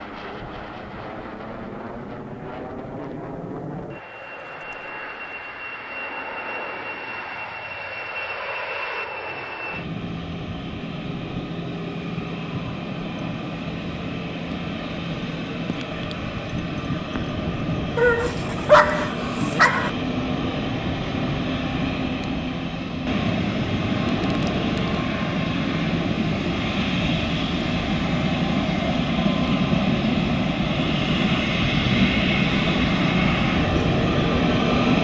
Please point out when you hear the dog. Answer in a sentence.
You can hear the dog from 17.9 to 19.9 s.